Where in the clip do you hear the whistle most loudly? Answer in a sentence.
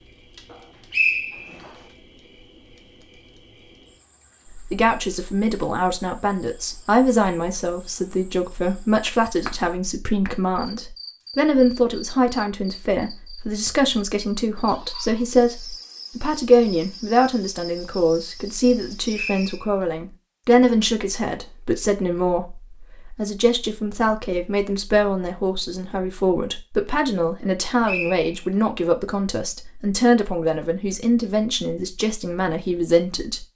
The volume of the whistle peaks at 1 second.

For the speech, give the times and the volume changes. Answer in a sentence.
The speech can be heard from 4.5 to 33.5 s, at a steady volume.